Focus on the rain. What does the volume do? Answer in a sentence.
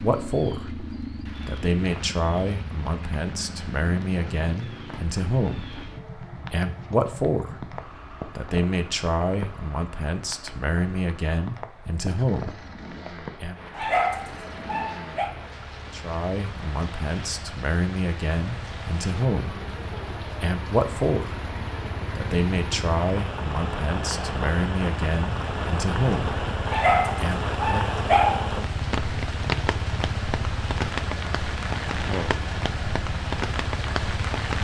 The loudness of the rain goes up.